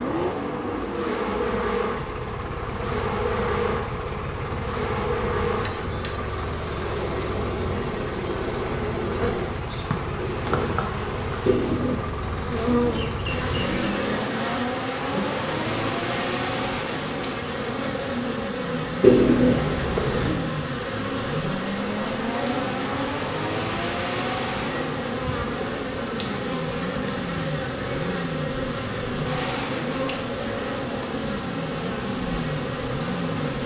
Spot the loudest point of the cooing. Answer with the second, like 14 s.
19 s.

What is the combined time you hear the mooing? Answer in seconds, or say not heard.
not heard.